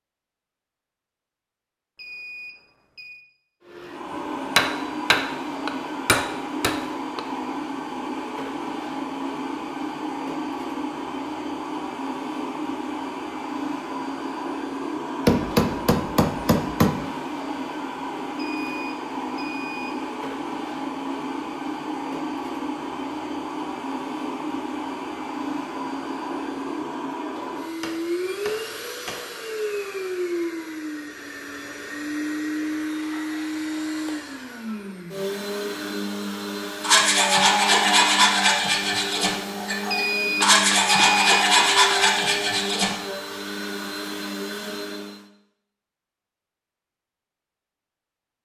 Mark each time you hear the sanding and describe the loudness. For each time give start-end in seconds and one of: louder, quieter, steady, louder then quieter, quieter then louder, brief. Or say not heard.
36.8-43.0 quieter then louder.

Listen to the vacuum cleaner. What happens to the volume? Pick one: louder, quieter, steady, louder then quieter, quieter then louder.
steady.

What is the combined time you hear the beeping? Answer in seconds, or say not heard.
4 s.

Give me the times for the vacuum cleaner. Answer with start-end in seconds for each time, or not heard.
3.6-45.2.